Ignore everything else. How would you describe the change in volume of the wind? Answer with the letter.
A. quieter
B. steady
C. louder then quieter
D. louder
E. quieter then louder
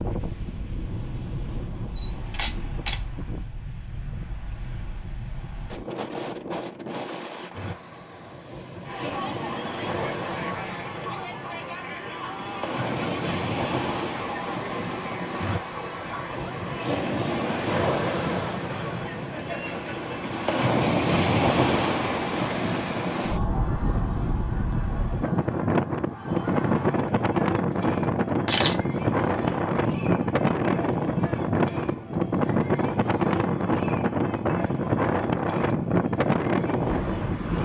D.